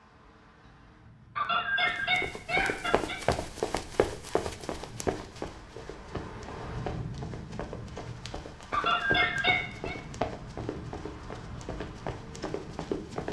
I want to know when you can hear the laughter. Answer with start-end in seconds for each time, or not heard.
1.4-3.2, 8.7-9.9.